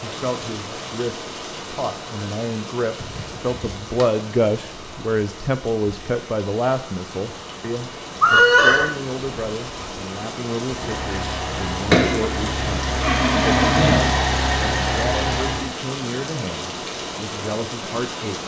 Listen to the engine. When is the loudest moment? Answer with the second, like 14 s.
12 s.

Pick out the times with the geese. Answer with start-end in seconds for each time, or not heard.
not heard.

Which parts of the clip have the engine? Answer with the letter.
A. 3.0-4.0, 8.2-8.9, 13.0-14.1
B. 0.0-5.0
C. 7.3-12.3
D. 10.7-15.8
D.